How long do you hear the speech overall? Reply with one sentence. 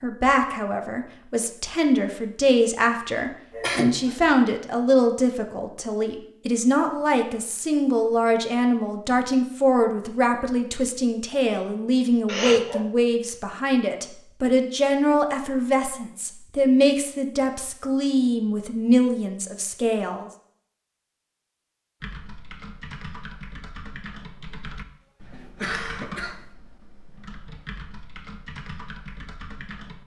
You can hear the speech for 20 seconds altogether.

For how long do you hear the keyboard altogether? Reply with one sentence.
You can hear the keyboard for 8 seconds altogether.